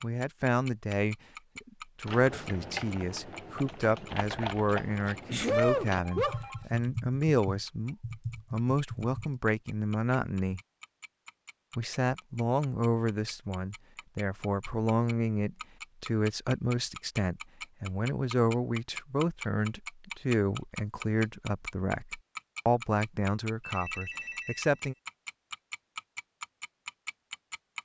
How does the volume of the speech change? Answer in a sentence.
The volume of the speech stays about the same.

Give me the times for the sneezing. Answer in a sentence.
You can hear the sneezing from 5.0 to 6.8 s.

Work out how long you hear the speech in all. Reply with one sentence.
The speech can be heard for 24 seconds in total.